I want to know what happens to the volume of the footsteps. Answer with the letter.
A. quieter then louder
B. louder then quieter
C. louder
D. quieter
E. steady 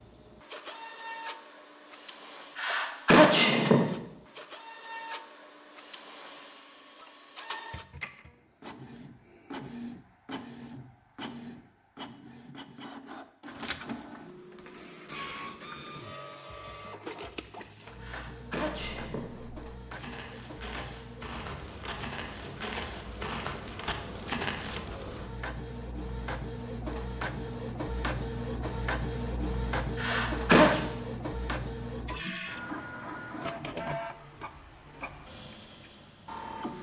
C.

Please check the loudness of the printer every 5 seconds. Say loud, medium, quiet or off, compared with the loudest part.
medium, medium, medium, medium, medium, loud, loud, medium.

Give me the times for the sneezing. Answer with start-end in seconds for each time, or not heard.
2.5-3.9, 18.0-19.4, 29.9-30.8.